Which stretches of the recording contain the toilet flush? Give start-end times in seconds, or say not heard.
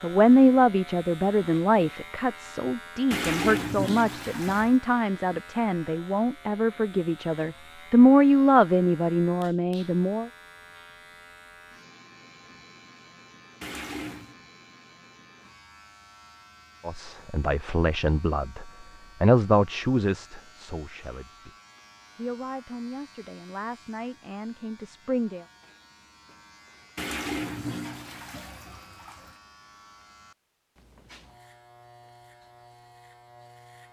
3.1-4.8, 13.6-14.3, 26.9-29.4.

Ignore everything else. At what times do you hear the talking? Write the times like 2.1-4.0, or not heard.
0.0-10.3, 16.9-21.5, 22.1-25.4.